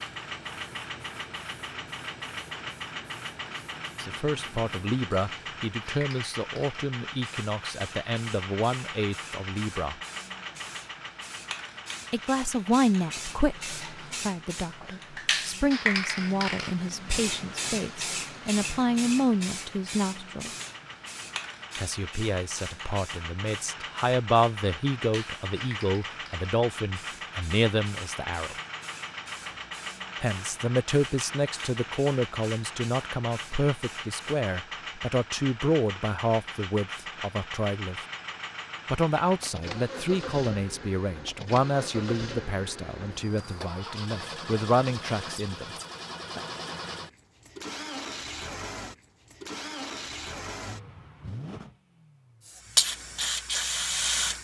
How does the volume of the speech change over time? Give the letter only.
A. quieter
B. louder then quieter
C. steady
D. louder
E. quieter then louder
C.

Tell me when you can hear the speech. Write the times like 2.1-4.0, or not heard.
4.0-9.9, 12.1-20.5, 21.8-28.6, 30.2-38.0, 38.9-45.8.